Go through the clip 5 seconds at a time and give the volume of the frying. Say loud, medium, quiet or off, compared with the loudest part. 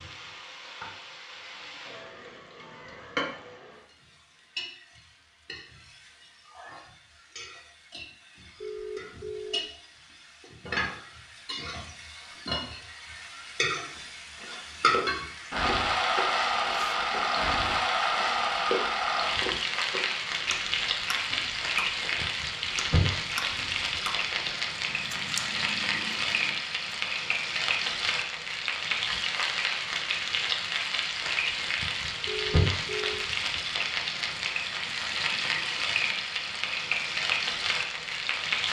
quiet, quiet, medium, loud, loud, loud, loud, loud.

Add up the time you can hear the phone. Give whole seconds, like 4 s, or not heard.
2 s.